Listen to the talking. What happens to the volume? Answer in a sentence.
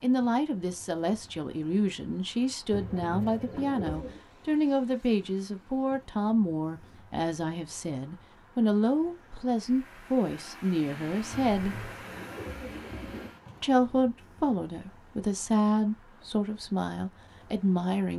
The loudness of the talking stays about the same.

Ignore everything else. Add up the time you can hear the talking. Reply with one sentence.
The talking can be heard for 16 seconds in total.